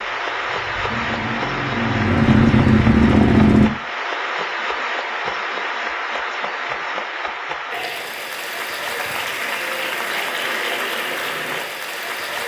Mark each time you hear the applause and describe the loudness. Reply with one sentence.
You can hear the applause from 0.0 to 12.4 s, at a steady volume.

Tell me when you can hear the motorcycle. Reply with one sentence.
The motorcycle can be heard from 0.0 to 3.7 s.